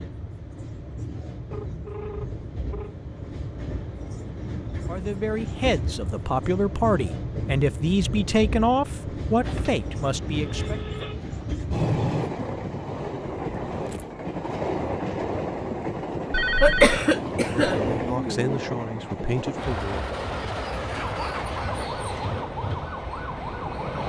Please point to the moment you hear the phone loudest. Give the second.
17 s.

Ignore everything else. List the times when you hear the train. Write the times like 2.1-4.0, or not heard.
0.0-24.0.